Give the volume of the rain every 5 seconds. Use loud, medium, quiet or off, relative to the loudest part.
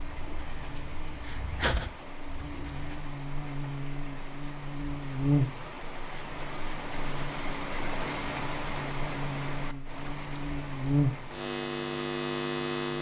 medium, loud, medium.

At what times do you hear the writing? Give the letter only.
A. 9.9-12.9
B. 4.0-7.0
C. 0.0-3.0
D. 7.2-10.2
C.